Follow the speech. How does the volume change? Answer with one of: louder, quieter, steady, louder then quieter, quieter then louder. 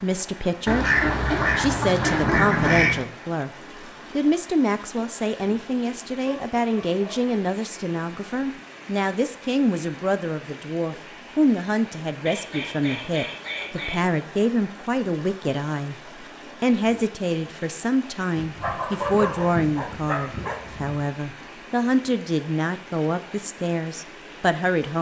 steady.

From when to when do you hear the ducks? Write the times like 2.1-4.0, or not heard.
0.7-3.0, 12.2-14.1, 18.4-21.0.